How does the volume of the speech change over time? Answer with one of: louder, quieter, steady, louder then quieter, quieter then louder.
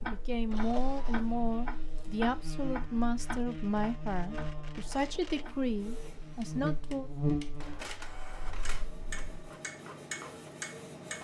steady.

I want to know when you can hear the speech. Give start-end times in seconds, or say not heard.
0.0-7.1.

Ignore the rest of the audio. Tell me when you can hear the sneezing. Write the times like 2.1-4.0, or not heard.
not heard.